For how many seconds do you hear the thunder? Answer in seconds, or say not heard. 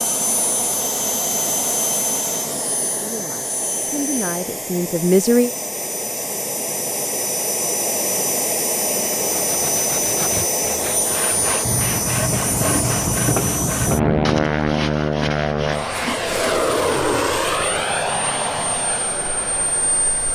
3 s.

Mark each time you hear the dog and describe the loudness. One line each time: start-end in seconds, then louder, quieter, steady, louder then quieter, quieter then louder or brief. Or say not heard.
not heard.